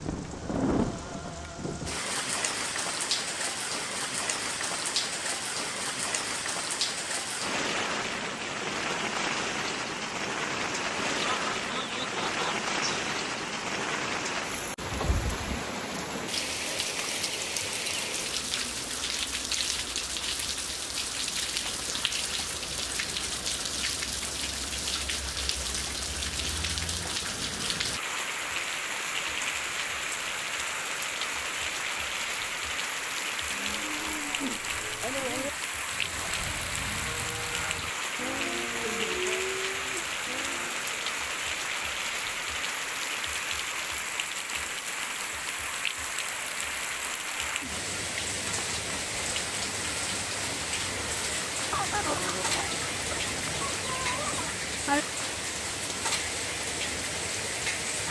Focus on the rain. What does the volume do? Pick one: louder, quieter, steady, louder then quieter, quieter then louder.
steady.